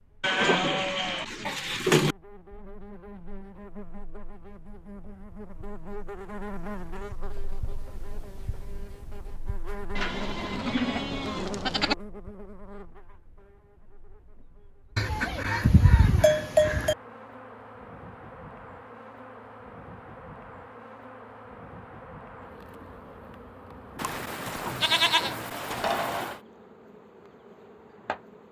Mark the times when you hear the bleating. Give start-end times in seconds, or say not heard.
0.2-2.1, 9.9-11.9, 14.9-16.9, 23.9-26.4.